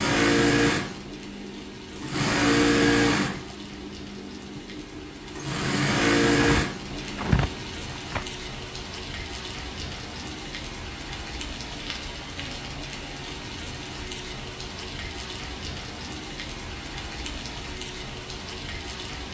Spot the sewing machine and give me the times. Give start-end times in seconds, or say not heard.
0.0-7.9.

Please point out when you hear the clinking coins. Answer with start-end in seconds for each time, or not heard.
not heard.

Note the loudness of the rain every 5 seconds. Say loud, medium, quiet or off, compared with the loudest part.
medium, loud, loud, loud.